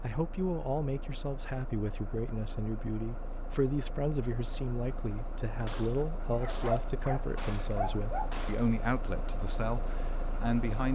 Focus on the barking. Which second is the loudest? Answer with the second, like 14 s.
7 s.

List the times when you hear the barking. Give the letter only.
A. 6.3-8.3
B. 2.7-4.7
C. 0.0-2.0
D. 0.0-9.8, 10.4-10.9
A.